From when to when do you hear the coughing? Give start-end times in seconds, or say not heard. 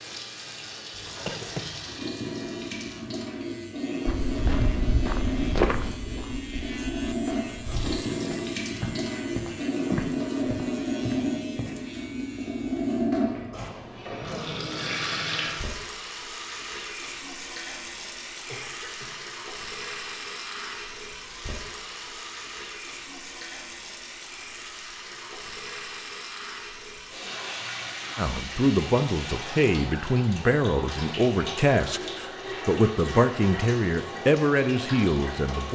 1.1-2.0, 18.4-19.2.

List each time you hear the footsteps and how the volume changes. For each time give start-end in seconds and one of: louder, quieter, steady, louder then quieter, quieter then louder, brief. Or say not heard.
4.0-11.7 quieter then louder.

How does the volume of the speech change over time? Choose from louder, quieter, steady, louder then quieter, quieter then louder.
steady.